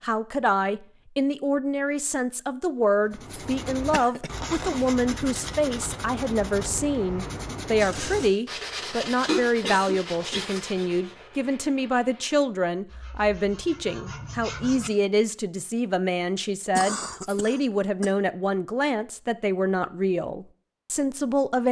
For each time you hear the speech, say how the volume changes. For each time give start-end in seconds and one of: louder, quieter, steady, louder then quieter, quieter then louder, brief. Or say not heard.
0.0-21.6 steady.